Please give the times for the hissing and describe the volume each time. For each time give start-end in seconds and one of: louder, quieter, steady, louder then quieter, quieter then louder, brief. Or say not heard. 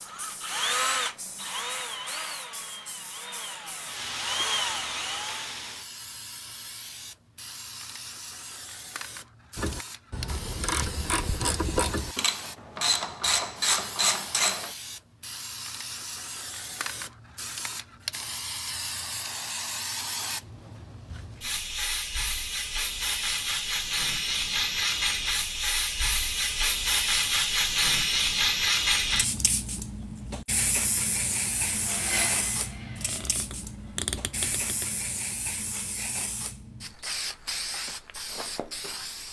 0.0-39.2 louder then quieter.